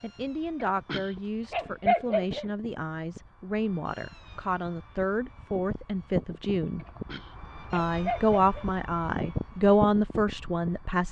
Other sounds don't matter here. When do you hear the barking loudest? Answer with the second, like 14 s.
2 s.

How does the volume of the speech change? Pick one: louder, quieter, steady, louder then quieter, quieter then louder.
louder.